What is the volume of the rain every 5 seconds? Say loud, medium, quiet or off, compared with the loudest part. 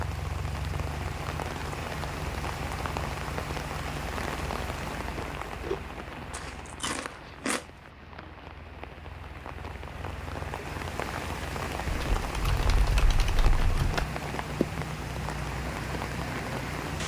loud, medium, loud, loud.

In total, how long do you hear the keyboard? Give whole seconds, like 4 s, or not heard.
2 s.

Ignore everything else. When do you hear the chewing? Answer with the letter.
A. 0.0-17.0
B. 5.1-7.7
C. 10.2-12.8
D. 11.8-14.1
B.